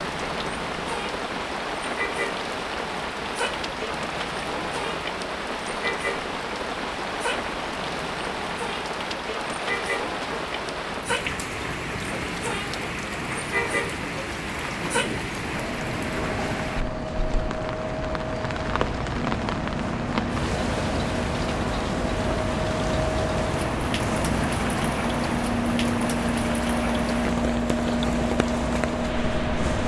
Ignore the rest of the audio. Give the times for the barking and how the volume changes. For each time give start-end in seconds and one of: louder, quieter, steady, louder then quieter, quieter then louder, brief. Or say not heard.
not heard.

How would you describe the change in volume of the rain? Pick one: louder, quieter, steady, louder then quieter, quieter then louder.
steady.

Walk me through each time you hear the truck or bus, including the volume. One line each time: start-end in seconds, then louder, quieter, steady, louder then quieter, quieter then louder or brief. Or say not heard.
0.0-29.8 louder.